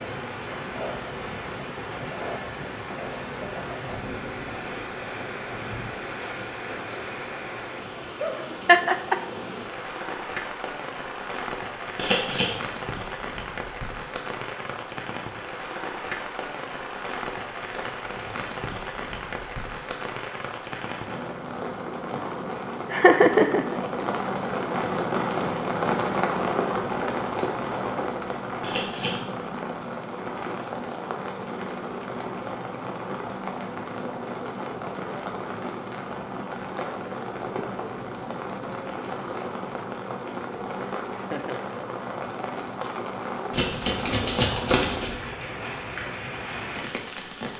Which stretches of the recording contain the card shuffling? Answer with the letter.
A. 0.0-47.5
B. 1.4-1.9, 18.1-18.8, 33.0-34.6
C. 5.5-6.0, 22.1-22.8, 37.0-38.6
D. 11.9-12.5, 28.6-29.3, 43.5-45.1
D.